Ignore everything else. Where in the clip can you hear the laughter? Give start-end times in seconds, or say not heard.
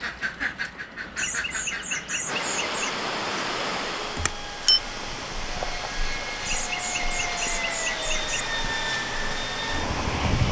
1.1-3.0, 6.4-8.4.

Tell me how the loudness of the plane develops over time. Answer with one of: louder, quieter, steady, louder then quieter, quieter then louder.
louder.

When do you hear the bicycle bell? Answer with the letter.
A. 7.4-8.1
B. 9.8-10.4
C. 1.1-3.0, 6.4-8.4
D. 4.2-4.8
D.